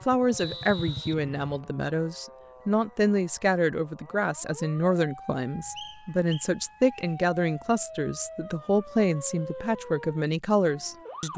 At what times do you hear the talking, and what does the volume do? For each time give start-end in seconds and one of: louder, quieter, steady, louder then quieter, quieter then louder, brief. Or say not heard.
0.1-11.3 steady.